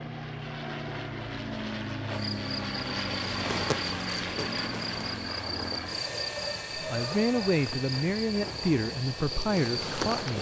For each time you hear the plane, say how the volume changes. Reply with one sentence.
You can hear the plane from 0.0 to 10.3 s, getting quieter.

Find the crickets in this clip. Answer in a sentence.
You can hear the crickets from 2.1 to 10.3 s.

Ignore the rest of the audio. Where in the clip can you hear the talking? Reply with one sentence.
You can hear the talking from 6.8 to 10.3 s.